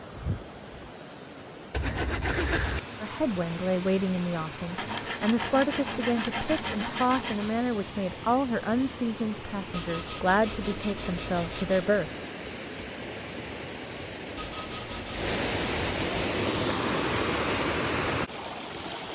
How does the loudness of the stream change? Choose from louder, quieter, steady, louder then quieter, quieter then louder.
louder.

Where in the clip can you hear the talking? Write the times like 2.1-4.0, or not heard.
3.0-12.2.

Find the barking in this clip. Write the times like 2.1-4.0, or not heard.
not heard.